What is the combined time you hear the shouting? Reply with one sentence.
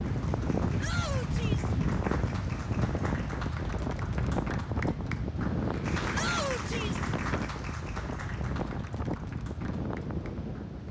The shouting can be heard for 2 seconds in total.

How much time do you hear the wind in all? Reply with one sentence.
You can hear the wind for 11 seconds altogether.